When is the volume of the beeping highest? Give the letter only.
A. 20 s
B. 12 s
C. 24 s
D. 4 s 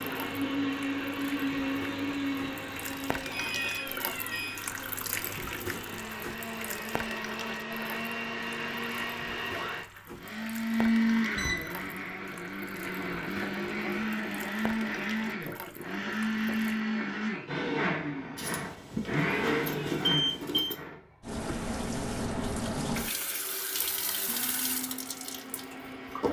A.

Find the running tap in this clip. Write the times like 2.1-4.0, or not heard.
0.0-16.8, 21.2-26.2.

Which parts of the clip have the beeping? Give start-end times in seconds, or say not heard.
3.2-4.6, 11.3-11.9, 18.4-20.8.